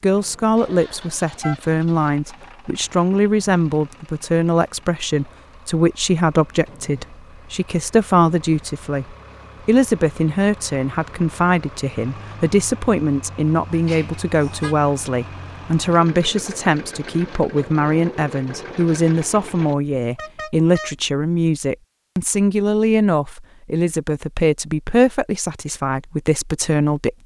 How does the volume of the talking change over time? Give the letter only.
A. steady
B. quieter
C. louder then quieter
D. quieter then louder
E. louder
A.